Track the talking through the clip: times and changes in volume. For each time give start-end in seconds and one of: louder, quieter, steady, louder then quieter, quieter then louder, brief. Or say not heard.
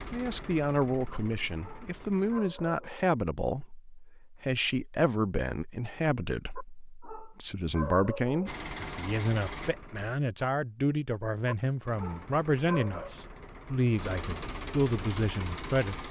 0.1-16.0 steady.